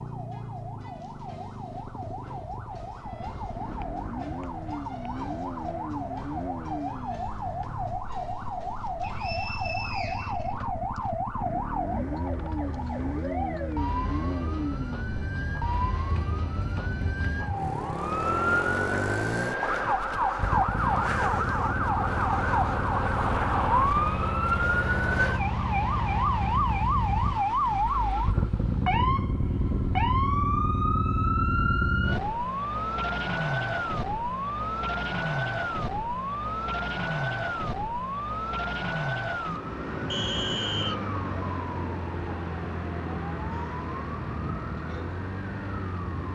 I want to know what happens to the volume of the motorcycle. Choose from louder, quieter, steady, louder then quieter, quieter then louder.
louder.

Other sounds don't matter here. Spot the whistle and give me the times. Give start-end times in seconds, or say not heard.
9.0-11.0, 40.1-41.0.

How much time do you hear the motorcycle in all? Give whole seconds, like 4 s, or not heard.
29 s.